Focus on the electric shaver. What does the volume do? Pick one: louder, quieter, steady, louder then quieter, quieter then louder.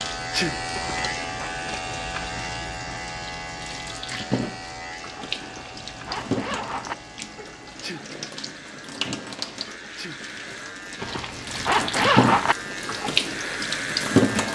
quieter then louder.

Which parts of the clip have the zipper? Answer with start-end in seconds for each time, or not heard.
0.7-1.6, 5.4-7.0, 11.0-12.6.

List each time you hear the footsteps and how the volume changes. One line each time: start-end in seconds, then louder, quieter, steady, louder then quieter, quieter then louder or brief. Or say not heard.
not heard.